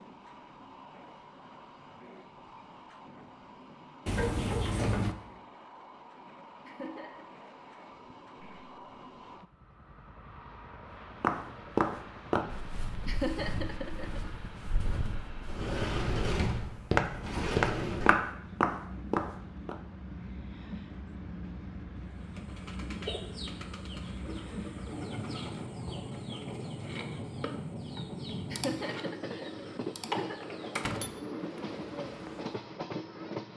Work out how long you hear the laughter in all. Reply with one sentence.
The laughter can be heard for 4 seconds in total.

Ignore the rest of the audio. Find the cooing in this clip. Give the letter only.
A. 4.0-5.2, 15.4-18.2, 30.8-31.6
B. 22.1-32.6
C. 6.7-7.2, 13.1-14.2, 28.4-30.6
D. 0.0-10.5
B.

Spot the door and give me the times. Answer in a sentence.
You can hear the door from 4.0 to 5.2 s, from 15.4 to 18.2 s and from 30.8 to 31.6 s.